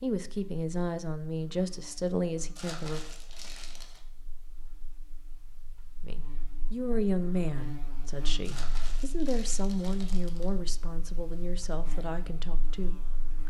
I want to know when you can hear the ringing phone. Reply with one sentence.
The ringing phone can't be heard in this clip.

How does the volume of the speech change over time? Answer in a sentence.
The loudness of the speech goes down.